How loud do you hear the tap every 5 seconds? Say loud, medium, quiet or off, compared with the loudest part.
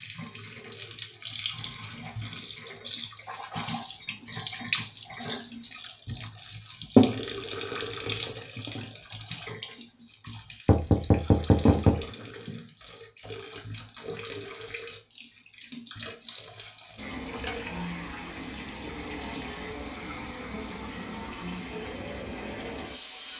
medium, loud, medium, medium, medium.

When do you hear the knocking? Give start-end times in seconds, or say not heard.
10.7-12.1.